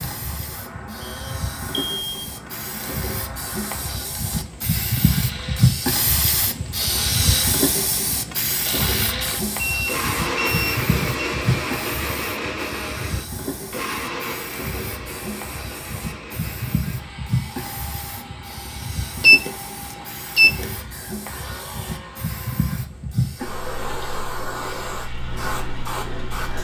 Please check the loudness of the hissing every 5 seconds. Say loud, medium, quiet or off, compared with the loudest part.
medium, loud, medium, medium, medium, medium.